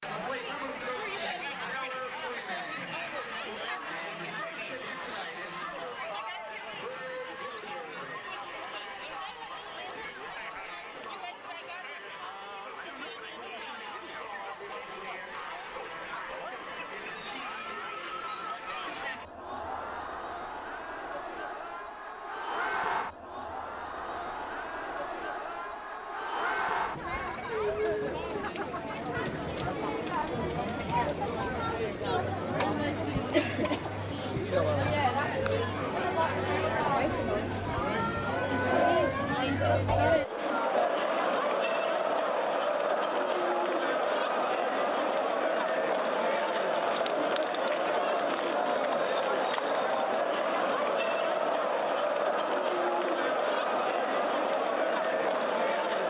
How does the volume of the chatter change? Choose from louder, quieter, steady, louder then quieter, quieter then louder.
louder.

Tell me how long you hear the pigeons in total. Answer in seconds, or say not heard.
2 s.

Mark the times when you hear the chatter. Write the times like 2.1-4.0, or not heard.
0.0-56.0.